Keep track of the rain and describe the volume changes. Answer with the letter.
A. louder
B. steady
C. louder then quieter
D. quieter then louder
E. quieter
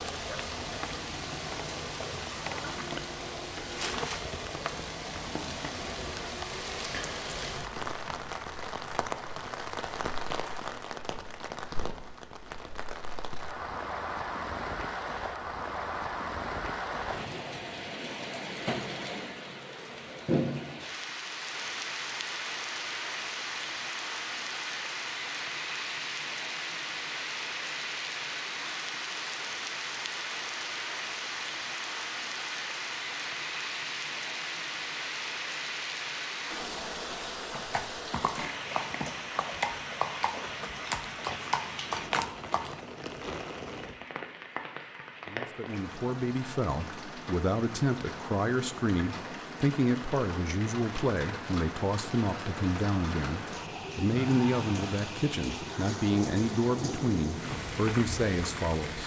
B.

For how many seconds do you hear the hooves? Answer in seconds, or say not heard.
5 s.